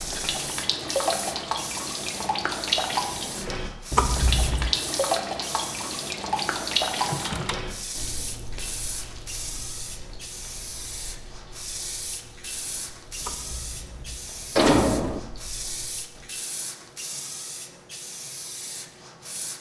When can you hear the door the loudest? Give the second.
15 s.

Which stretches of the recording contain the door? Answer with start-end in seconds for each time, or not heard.
3.9-4.7, 7.0-7.7, 13.2-15.2.